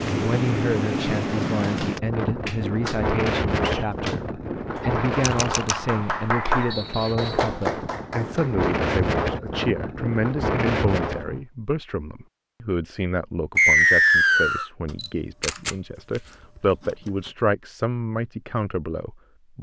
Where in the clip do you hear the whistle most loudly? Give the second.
14 s.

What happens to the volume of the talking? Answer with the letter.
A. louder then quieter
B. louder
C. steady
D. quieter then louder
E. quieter
C.